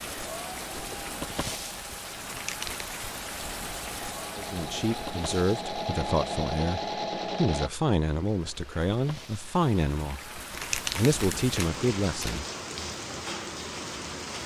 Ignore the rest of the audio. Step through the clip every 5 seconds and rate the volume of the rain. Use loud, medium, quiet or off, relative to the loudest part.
loud, medium, loud.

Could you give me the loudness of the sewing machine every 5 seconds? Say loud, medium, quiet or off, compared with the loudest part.
medium, loud, off.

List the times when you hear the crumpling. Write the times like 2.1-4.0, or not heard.
2.2-2.9, 10.5-12.4.